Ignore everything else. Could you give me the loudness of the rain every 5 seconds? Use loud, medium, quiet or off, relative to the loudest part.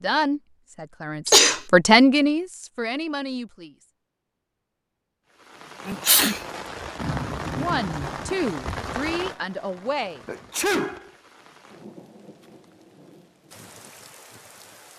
off, loud, quiet.